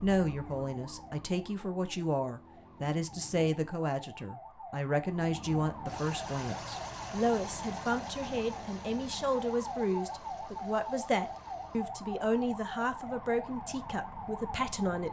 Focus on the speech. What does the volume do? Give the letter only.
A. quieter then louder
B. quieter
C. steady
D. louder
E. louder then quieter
C.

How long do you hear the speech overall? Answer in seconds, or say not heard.
15 s.